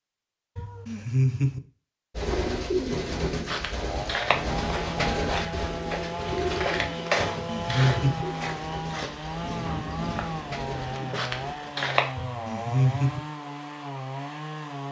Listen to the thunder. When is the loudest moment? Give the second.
10 s.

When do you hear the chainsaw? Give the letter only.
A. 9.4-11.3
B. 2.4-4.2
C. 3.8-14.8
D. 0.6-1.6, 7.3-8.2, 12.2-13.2
C.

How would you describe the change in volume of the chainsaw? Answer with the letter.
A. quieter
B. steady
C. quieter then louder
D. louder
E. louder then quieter
B.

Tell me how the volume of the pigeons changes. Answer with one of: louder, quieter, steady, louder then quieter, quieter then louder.
quieter.